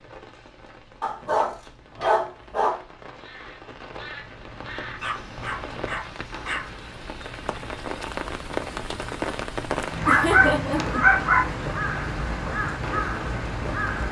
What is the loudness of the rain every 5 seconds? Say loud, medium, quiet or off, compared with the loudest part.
quiet, loud, loud.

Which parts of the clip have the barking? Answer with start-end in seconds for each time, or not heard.
1.0-2.8, 5.0-6.7, 10.0-11.5.